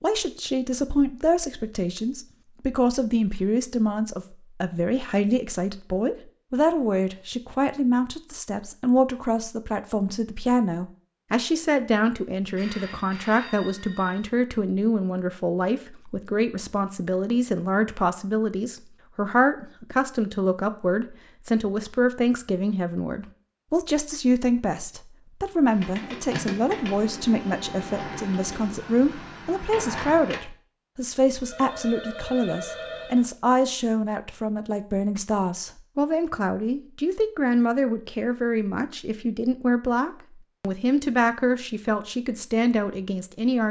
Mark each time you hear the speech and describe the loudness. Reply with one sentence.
You can hear the speech from 0.0 to 43.6 s, at a steady volume.